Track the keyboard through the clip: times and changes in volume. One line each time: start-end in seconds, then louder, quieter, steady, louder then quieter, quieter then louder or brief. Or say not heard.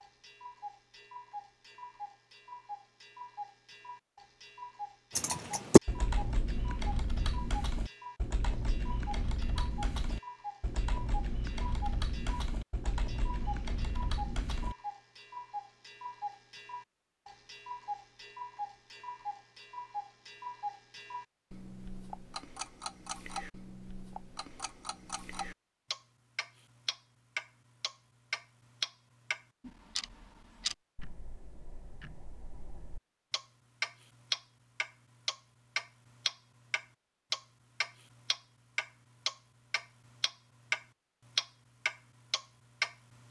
5.1-14.8 quieter.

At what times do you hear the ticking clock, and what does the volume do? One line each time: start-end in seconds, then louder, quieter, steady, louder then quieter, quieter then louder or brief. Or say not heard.
0.0-43.2 louder.